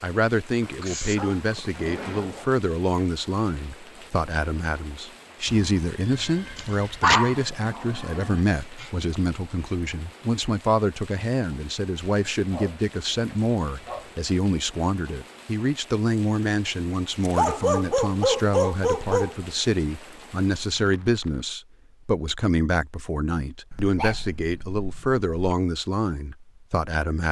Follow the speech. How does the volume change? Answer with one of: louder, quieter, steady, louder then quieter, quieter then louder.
steady.